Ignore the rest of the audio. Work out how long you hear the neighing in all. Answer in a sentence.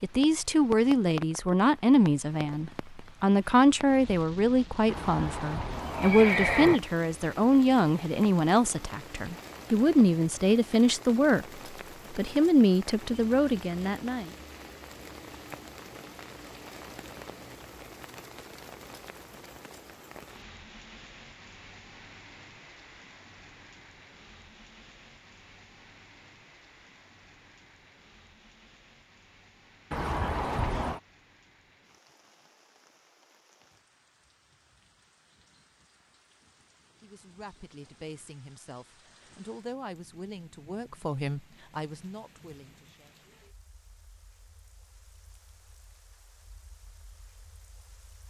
The neighing can be heard for 3 seconds in total.